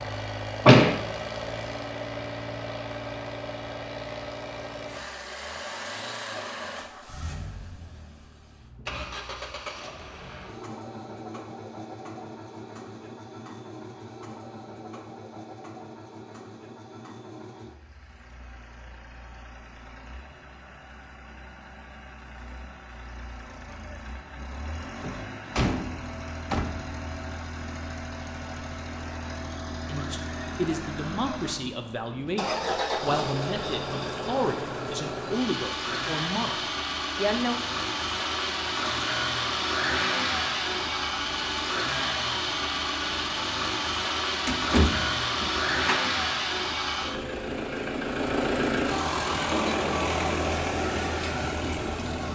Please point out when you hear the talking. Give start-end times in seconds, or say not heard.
29.9-37.6.